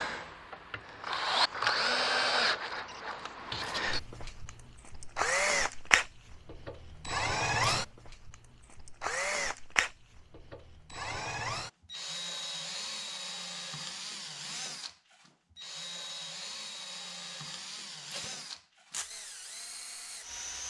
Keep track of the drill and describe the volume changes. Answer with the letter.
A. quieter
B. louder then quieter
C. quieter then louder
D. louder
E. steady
A.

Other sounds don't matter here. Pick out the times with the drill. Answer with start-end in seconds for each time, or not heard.
0.0-20.6.